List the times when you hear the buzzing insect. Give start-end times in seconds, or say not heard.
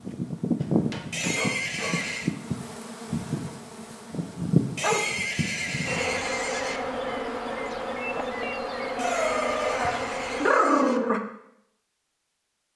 0.0-10.6.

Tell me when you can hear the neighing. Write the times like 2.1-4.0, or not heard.
1.1-2.3, 4.8-6.8, 8.9-11.0.